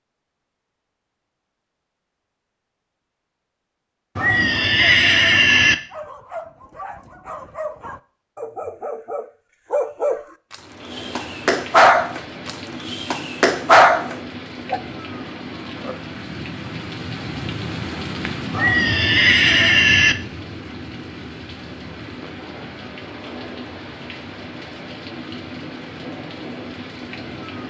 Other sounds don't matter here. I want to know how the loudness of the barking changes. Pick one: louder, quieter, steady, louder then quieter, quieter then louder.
louder.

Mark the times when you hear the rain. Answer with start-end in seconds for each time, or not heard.
10.5-27.6.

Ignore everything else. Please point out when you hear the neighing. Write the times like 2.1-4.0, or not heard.
4.2-5.8, 18.5-20.1.